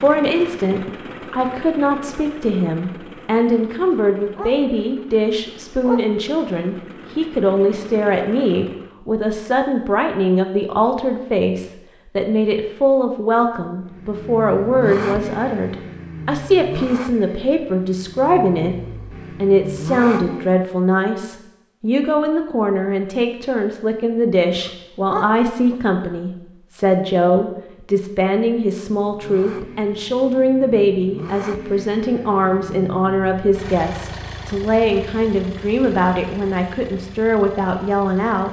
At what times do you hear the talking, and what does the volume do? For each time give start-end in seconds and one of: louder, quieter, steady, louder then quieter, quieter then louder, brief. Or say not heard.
0.0-38.4 steady.